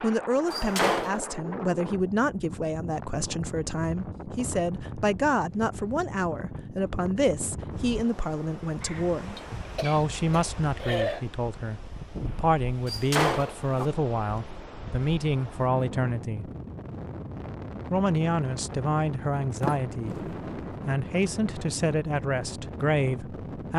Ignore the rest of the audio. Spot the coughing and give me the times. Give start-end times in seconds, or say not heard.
8.8-11.2.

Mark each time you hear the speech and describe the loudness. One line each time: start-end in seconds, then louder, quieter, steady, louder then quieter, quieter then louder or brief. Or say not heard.
0.0-16.5 steady
17.9-23.7 steady.